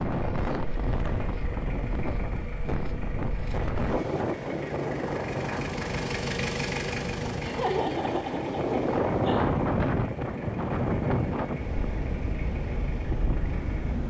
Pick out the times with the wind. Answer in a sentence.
You can hear the wind from 0.0 to 14.0 s.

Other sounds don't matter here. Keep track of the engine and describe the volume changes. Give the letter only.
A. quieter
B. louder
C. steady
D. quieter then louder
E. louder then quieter
E.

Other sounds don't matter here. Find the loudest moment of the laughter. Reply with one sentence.
The volume of the laughter peaks at 8 seconds.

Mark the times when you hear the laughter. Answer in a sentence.
You can hear the laughter from 7.4 to 9.4 s.